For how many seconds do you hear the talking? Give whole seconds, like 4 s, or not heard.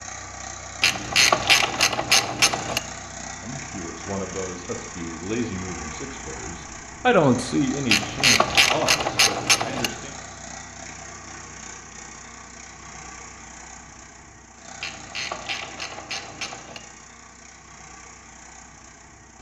7 s.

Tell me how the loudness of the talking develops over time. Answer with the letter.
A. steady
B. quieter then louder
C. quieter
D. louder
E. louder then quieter
E.